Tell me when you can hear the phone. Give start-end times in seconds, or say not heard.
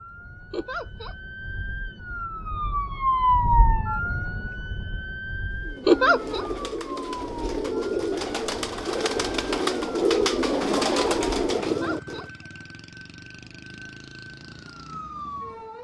not heard.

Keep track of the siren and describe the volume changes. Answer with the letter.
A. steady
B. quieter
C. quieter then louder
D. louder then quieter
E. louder
B.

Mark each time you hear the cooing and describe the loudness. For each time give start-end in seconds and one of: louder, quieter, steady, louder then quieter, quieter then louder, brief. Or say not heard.
5.5-12.3 louder.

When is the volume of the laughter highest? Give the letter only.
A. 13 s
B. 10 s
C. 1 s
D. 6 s
D.